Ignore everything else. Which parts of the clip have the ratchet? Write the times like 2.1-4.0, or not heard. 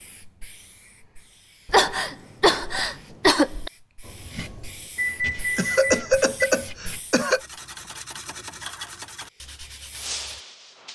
not heard.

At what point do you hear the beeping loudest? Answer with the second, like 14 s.
5 s.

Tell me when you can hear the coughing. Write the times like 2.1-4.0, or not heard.
1.6-3.7, 5.5-7.4.